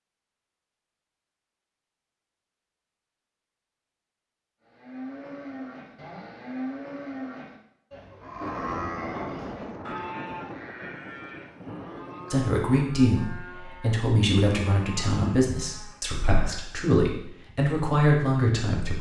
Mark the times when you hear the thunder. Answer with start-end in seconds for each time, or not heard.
8.4-12.4.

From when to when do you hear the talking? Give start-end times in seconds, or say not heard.
12.3-18.9.